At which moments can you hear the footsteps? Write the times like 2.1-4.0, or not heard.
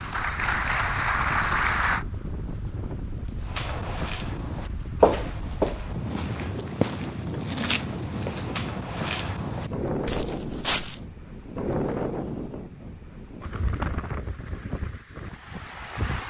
3.5-11.0.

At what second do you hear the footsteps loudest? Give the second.
5 s.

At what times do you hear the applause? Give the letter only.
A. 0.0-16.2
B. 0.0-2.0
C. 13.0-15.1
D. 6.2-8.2
B.